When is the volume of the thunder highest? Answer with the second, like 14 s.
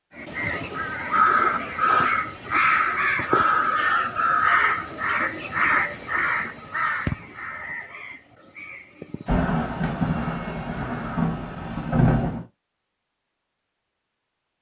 12 s.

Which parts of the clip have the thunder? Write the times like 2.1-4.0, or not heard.
9.2-12.4.